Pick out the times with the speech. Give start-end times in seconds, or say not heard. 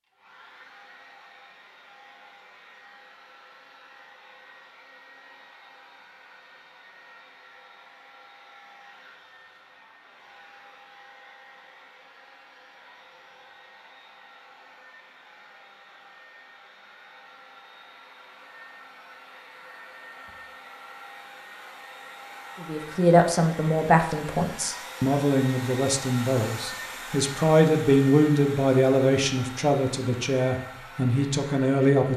22.6-32.1.